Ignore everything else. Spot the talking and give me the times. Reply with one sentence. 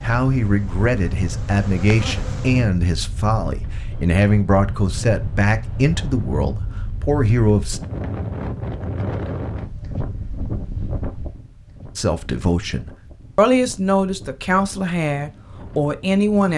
The talking can be heard from 0.0 to 7.8 s and from 11.9 to 16.5 s.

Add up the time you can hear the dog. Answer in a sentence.
You can't hear the dog here.